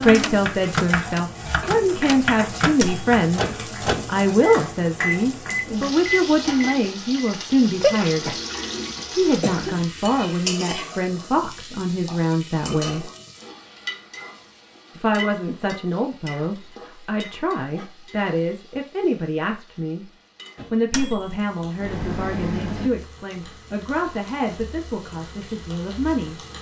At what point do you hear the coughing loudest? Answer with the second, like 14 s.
10 s.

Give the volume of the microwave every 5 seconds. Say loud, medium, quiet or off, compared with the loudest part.
loud, loud, off, off, medium, off.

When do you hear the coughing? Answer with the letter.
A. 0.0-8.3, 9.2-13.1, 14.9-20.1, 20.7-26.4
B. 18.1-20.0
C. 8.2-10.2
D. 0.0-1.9
C.